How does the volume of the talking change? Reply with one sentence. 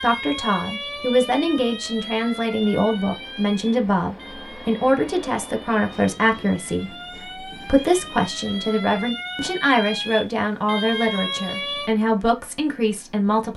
The volume of the talking stays about the same.